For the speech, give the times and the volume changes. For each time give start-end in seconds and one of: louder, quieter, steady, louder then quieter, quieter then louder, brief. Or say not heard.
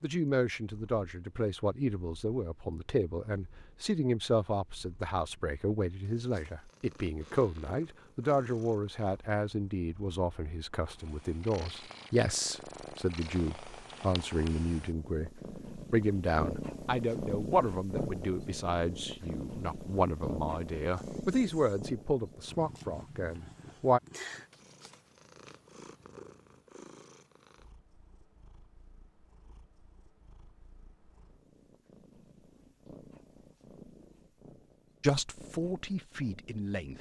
0.0-24.0 steady
35.0-36.9 brief.